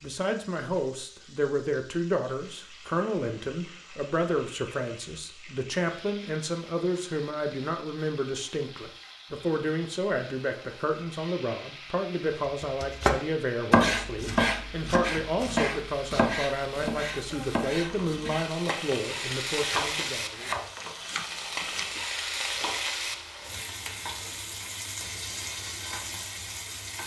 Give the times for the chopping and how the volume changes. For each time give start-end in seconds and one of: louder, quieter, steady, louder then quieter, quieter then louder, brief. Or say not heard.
12.6-21.9 quieter.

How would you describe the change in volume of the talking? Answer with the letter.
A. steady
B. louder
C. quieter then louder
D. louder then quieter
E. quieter
A.